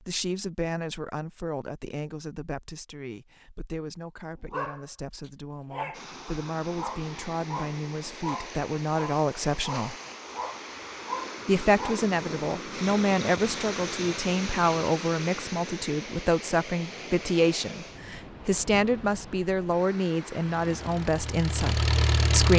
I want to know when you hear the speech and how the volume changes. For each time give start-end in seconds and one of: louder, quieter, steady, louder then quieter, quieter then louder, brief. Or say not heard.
0.1-9.9 quieter then louder
11.4-22.5 steady.